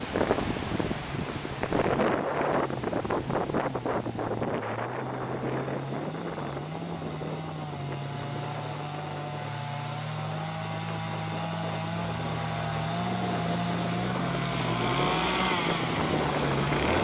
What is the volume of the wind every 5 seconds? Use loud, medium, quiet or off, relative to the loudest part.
loud, medium, medium, loud.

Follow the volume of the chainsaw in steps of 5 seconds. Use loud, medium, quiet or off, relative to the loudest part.
quiet, medium, loud, loud.